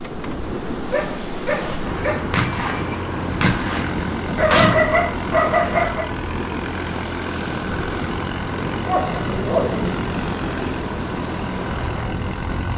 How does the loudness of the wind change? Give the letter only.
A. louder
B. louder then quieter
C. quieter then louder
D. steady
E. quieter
D.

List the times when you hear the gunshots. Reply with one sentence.
You can hear the gunshots from 1.4 to 4.8 s.